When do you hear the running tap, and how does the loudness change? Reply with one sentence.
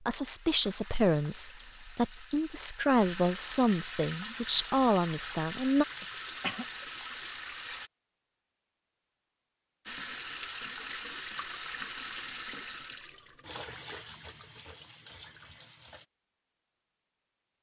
You can hear the running tap from 0.2 to 7.9 s, getting louder; and from 9.8 to 16.1 s, getting quieter.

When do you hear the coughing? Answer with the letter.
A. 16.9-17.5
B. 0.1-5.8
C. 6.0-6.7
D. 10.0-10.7
C.